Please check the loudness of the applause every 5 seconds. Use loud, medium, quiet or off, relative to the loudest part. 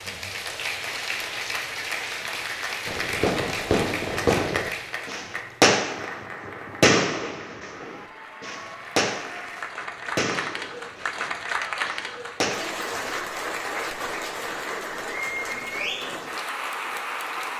loud, medium, loud, loud.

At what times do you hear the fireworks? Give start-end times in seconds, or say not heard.
2.9-12.8.